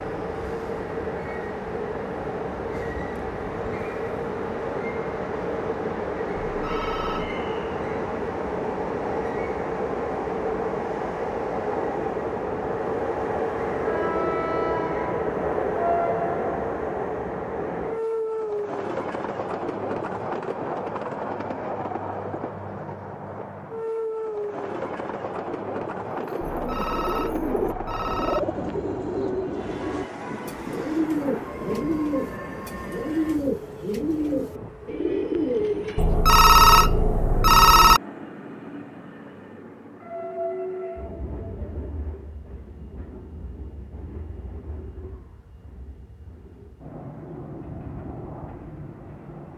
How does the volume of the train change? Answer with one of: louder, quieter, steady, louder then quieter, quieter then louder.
quieter.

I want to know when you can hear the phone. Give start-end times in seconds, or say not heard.
6.5-7.3, 26.4-28.4, 36.0-38.0.